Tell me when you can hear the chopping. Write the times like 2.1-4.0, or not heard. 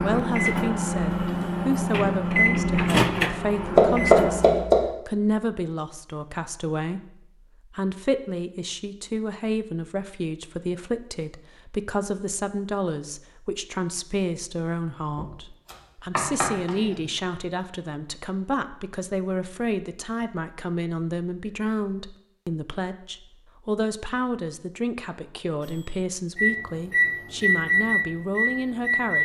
3.8-4.8, 15.2-17.1.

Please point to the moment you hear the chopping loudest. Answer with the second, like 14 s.
4 s.